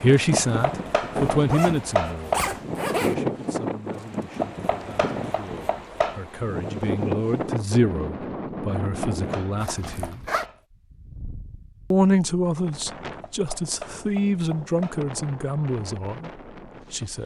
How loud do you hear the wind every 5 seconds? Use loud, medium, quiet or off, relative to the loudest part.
loud, loud, quiet, medium.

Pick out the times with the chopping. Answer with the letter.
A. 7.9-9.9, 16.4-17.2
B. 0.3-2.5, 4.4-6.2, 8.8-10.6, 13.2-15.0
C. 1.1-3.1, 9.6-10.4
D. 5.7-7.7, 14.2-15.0
B.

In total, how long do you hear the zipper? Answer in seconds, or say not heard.
3 s.